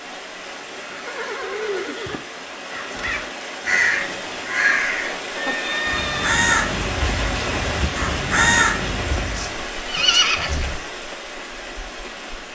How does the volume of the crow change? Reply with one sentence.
The loudness of the crow goes down, then up.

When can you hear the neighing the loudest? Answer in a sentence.
The volume of the neighing peaks at 10 seconds.